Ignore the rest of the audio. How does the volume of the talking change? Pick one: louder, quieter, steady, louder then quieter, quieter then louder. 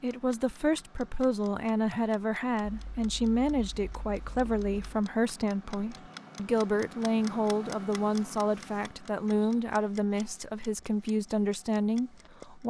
steady.